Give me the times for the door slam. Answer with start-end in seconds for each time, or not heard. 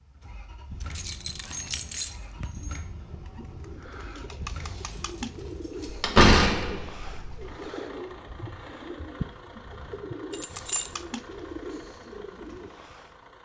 5.8-7.5.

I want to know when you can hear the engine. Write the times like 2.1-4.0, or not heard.
0.0-13.4.